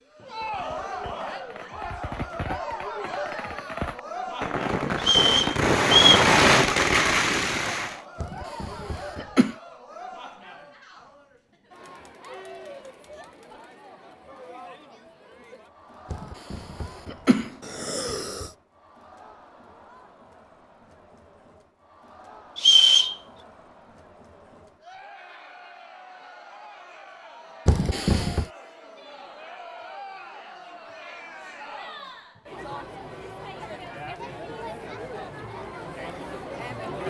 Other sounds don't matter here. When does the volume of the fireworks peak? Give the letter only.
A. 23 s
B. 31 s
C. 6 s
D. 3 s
C.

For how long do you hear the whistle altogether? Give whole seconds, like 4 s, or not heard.
2 s.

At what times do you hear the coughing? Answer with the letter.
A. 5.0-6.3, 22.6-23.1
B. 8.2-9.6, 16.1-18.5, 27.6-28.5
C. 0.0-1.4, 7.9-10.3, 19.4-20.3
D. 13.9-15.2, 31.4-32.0
B.